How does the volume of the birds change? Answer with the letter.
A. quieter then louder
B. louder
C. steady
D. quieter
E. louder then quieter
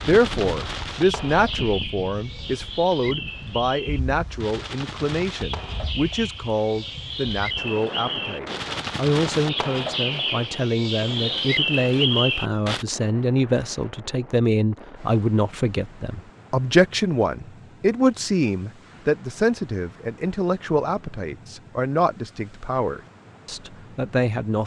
B.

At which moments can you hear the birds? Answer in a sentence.
You can hear the birds from 0.0 to 12.8 s.